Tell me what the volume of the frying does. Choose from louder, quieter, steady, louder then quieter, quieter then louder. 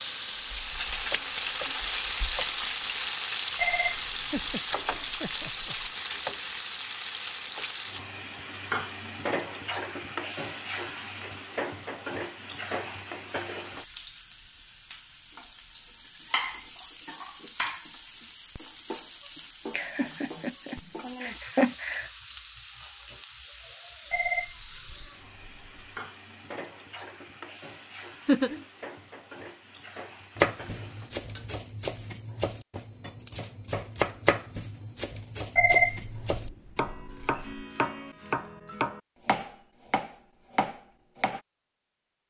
quieter.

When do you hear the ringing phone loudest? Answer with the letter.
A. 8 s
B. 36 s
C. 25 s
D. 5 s
B.